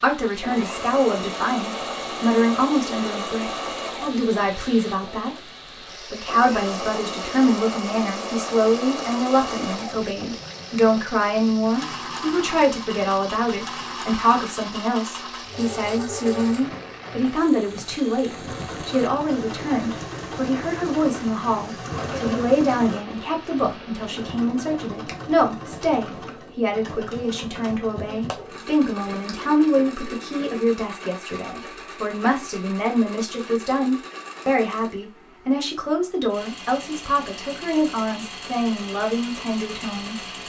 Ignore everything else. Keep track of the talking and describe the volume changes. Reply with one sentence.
The loudness of the talking stays about the same.